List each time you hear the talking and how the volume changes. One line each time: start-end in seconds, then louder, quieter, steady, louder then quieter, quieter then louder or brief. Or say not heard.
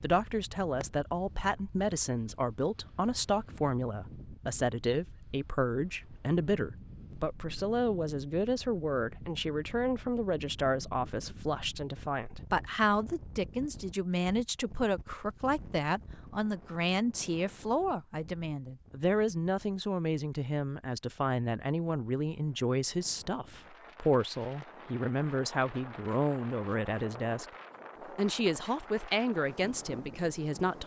0.0-27.4 steady
28.1-30.8 brief.